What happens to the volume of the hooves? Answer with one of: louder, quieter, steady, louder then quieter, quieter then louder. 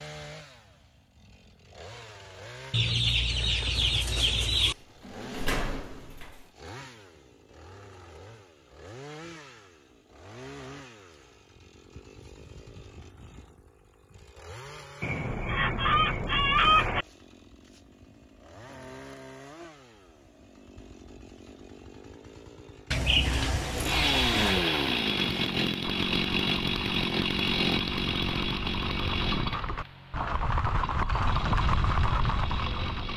louder.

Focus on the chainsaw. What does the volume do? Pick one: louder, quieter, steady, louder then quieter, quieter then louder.
louder.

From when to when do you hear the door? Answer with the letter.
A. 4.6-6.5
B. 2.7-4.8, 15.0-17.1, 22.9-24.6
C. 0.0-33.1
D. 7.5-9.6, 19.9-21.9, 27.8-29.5
A.